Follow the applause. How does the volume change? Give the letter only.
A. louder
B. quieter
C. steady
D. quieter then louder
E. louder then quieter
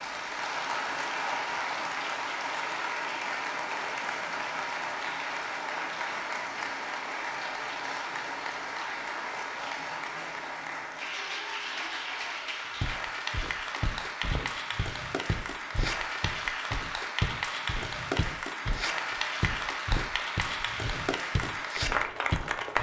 C.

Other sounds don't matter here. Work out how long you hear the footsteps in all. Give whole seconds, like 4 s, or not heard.
10 s.